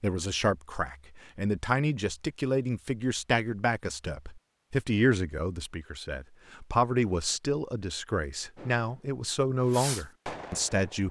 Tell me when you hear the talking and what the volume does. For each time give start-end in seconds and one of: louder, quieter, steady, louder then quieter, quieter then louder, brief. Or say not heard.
0.0-11.0 steady.